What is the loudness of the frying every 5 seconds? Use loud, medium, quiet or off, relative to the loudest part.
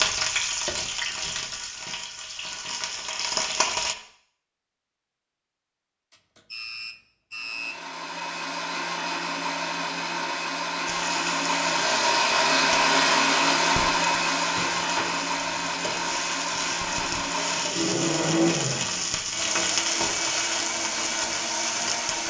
loud, off, medium, loud, loud.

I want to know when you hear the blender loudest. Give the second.
13 s.